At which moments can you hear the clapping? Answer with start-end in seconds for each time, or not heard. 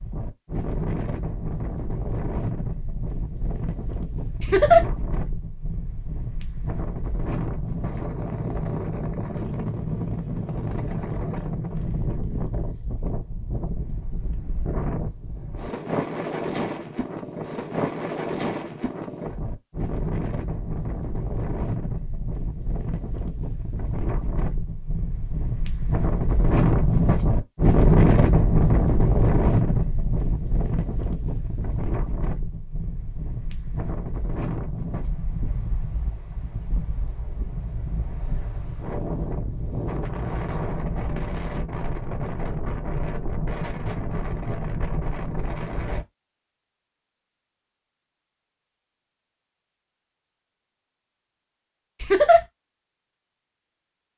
not heard.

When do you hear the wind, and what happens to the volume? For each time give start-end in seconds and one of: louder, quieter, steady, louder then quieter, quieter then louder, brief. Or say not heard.
0.0-46.0 louder then quieter.